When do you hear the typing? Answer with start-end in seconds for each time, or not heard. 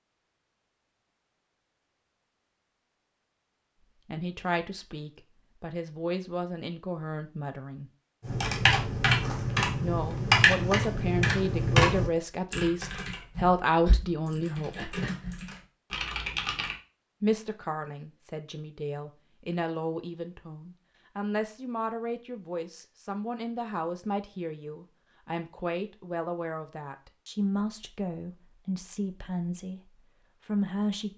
8.2-16.8.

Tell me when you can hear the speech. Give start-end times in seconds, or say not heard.
4.0-7.9, 9.8-14.9, 17.2-31.1.